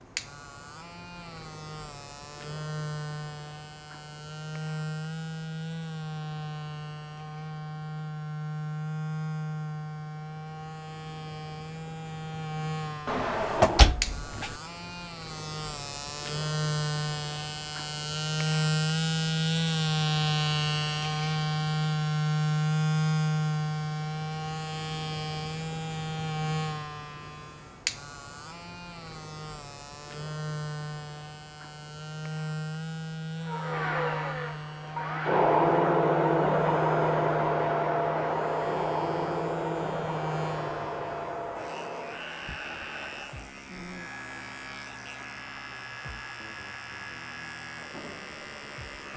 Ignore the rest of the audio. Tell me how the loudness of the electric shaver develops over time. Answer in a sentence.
The volume of the electric shaver goes up, then down.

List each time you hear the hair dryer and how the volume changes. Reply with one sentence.
You can hear the hair dryer from 33.4 to 49.1 s, getting quieter.